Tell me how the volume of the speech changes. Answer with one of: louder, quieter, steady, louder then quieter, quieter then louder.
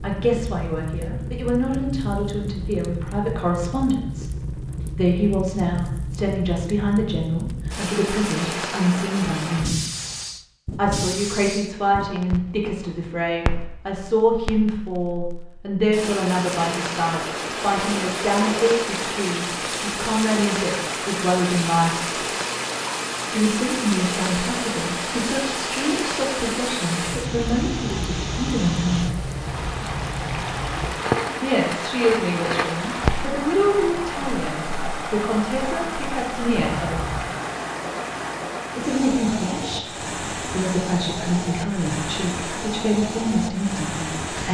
steady.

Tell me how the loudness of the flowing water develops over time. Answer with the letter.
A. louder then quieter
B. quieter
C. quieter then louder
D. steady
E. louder
D.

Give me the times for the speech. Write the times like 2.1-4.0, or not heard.
0.0-4.3, 5.0-9.8, 10.8-22.2, 23.3-29.1, 31.4-37.0, 38.8-44.4.